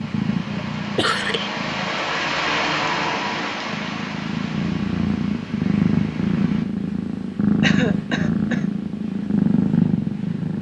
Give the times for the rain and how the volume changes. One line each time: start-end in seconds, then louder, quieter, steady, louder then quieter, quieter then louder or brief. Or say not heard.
0.0-6.7 louder then quieter.